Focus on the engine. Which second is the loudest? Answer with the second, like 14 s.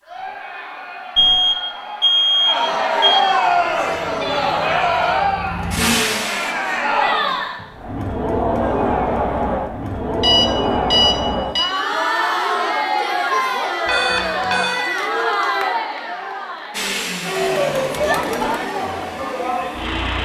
6 s.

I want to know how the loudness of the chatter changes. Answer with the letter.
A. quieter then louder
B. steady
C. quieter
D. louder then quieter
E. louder
B.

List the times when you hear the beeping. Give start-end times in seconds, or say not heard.
1.1-3.2, 10.2-11.7, 13.8-14.8.